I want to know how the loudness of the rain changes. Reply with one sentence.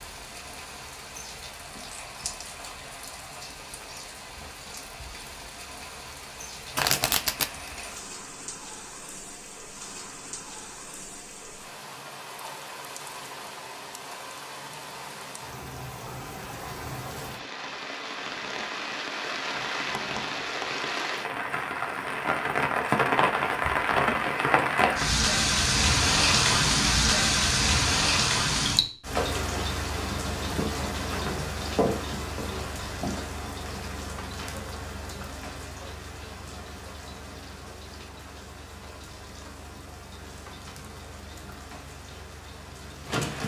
The volume of the rain goes up, then down.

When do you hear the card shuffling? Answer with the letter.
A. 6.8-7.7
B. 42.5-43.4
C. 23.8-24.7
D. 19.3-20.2
A.